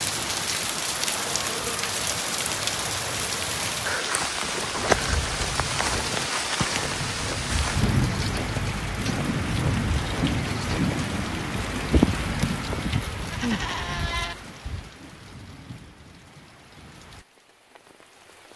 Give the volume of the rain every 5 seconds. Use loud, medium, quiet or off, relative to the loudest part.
loud, loud, loud, quiet.